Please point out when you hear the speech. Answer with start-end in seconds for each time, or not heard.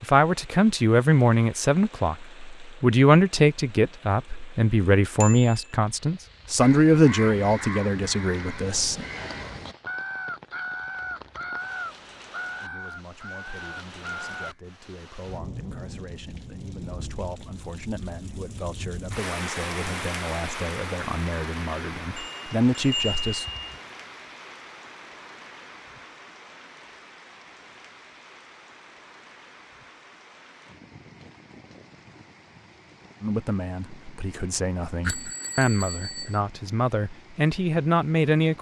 0.0-9.1, 12.6-23.4, 33.2-38.5.